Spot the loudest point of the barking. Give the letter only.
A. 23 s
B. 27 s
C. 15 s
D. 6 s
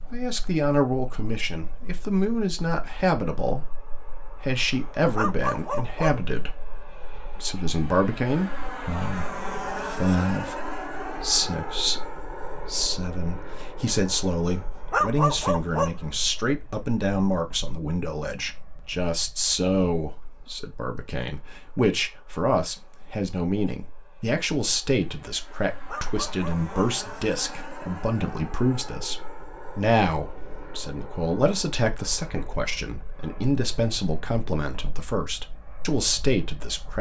C.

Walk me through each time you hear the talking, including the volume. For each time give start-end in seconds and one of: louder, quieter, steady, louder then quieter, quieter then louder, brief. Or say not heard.
0.1-36.9 steady.